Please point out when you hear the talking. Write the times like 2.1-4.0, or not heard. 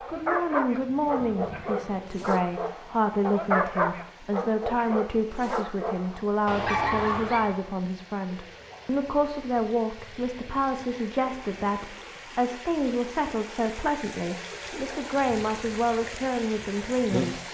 0.1-17.4.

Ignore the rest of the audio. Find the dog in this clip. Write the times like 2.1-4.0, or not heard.
0.0-7.7.